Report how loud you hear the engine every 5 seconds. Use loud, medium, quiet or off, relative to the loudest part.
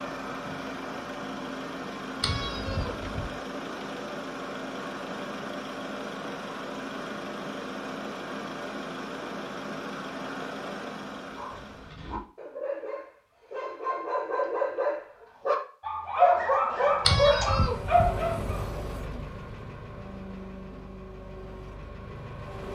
loud, loud, loud, loud, medium.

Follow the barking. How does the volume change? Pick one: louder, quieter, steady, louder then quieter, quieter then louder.
louder.